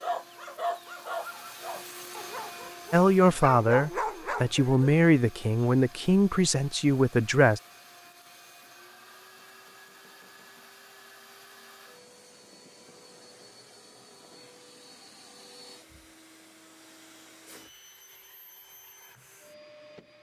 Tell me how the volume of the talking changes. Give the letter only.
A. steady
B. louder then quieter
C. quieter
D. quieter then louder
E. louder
A.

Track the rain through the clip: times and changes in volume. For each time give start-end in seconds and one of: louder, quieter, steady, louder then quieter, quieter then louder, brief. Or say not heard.
not heard.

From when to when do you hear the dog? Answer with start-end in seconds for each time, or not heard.
0.0-5.0.